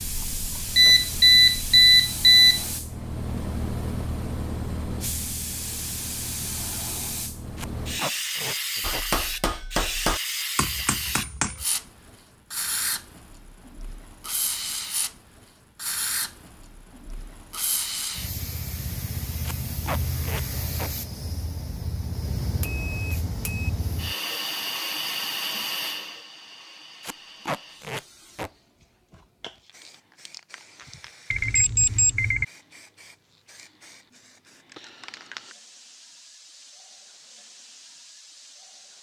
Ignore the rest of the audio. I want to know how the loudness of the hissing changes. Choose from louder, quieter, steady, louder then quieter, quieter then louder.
quieter.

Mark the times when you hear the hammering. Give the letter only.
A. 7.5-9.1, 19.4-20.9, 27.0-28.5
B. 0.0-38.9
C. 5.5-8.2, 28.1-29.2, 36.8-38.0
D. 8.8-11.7
D.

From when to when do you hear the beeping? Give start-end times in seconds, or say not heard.
0.1-2.6, 22.6-23.7, 31.3-32.5.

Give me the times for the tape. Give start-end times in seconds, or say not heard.
7.5-9.1, 19.4-20.9, 27.0-28.5.